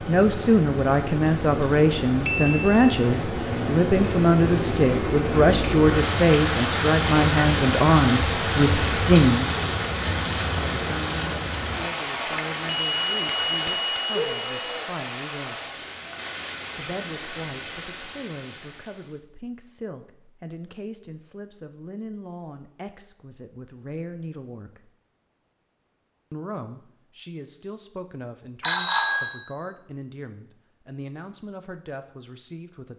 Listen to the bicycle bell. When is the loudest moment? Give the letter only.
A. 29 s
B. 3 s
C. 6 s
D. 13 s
A.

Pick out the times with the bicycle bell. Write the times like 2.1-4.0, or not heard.
2.2-2.8, 12.3-14.8, 28.6-29.4.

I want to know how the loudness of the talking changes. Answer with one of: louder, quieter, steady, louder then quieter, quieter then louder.
quieter.